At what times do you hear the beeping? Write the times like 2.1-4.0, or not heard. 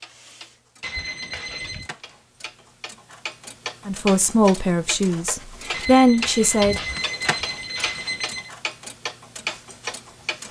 0.8-1.9, 5.7-8.5.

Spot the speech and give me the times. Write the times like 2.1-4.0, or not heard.
3.9-6.8.